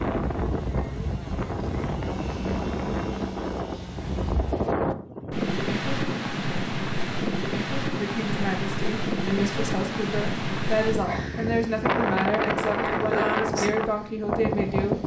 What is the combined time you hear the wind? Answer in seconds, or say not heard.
15 s.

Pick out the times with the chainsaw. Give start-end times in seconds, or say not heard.
0.0-4.5.